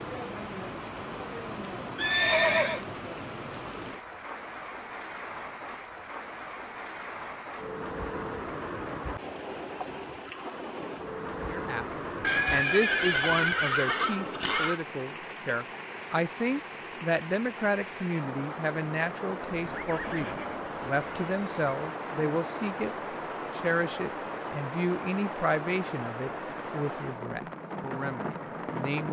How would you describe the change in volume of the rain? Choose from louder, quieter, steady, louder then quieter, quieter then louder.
steady.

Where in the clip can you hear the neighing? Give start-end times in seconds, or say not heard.
1.9-2.8, 12.2-14.8, 19.5-21.8.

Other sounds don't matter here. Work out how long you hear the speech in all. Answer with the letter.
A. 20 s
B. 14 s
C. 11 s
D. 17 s
D.